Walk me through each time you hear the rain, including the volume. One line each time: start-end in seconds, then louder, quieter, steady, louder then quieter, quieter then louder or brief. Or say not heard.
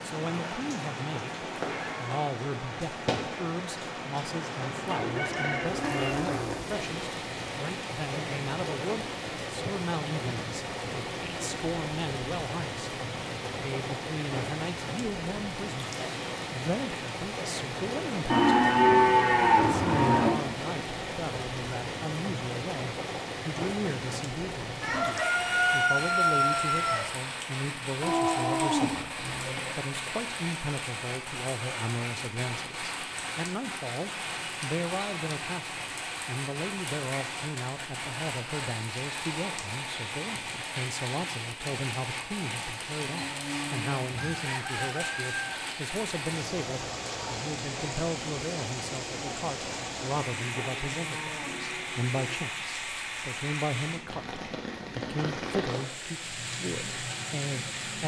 0.0-58.0 steady.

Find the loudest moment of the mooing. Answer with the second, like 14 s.
19 s.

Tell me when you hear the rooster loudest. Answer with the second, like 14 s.
26 s.